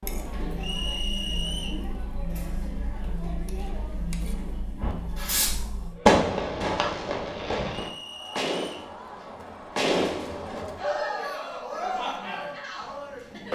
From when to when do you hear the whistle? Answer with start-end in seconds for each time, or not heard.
0.6-1.9, 7.7-8.9.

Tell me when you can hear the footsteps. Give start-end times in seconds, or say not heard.
not heard.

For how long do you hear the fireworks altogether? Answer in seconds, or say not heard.
6 s.